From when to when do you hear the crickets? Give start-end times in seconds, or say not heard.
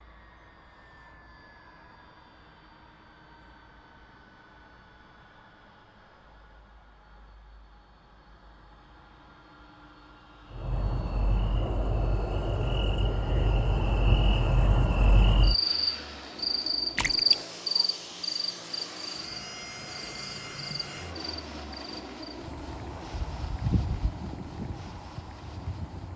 10.5-26.1.